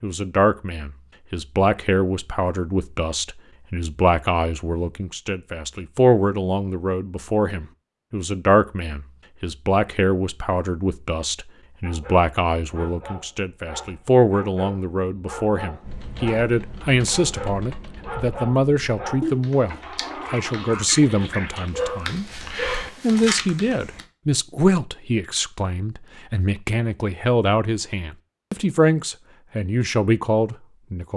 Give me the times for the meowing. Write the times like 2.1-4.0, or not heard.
not heard.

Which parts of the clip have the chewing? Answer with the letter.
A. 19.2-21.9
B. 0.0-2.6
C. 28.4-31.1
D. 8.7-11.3
A.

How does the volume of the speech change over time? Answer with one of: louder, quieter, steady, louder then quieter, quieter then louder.
steady.